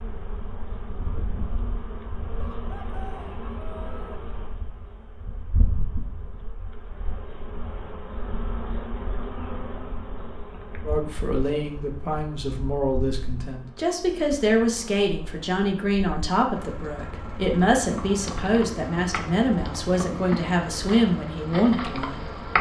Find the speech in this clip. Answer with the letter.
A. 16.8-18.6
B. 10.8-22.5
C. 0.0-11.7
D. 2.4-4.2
B.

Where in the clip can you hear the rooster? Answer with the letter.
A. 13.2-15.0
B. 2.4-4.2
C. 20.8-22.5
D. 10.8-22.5
B.